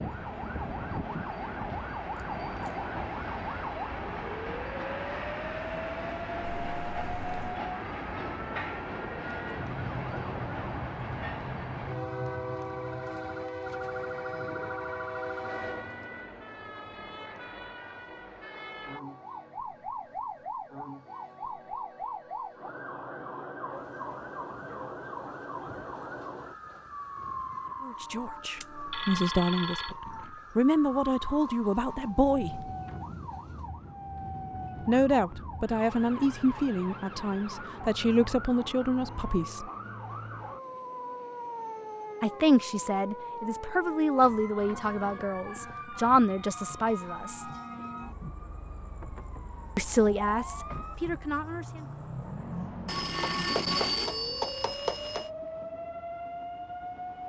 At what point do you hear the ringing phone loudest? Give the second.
54 s.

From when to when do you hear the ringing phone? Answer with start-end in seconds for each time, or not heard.
6.4-7.5, 28.6-29.9, 52.9-55.2.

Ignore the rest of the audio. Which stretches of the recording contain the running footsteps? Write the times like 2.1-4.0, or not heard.
not heard.